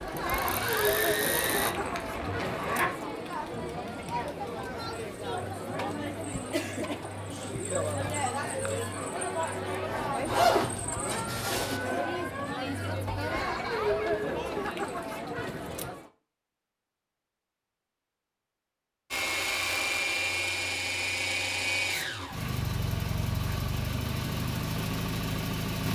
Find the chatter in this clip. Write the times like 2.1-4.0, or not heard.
0.0-16.1.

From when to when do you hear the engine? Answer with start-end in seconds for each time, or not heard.
0.0-1.8, 19.1-25.9.